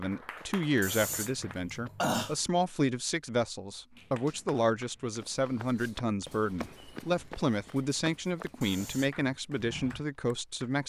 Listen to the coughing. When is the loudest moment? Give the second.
2 s.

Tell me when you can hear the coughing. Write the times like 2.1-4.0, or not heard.
0.8-2.4, 8.6-9.2.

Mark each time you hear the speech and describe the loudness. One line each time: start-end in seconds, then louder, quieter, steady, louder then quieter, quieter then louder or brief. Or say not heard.
0.0-10.8 steady.